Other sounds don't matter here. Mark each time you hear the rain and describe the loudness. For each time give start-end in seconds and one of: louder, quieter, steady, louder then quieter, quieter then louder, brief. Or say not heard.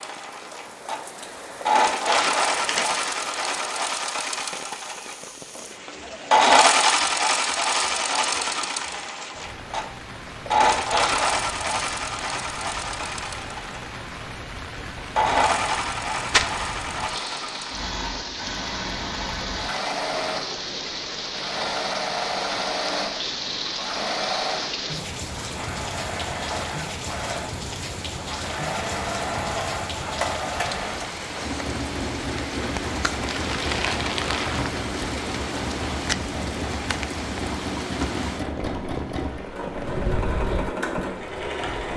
0.0-41.9 louder.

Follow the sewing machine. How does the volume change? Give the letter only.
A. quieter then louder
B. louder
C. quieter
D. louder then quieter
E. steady
C.